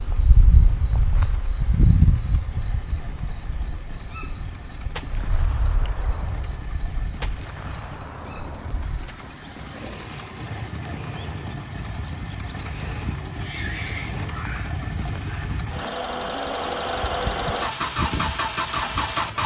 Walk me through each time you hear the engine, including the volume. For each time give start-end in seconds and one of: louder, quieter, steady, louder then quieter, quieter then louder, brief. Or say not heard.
0.0-19.4 louder.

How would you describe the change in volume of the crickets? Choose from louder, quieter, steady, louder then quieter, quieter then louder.
quieter.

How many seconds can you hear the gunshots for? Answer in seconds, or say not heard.
4 s.